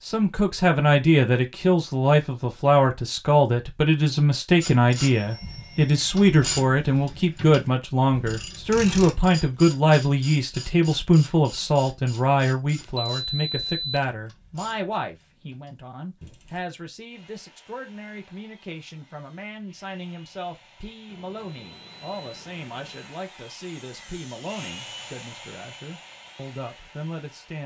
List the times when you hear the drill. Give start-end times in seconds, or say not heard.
17.1-27.6.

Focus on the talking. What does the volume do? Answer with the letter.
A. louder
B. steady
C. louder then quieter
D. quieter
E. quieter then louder
D.